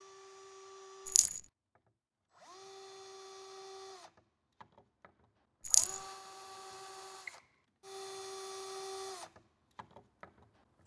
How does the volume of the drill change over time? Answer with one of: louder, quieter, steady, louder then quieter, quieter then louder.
louder.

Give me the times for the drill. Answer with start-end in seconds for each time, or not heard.
0.0-10.8.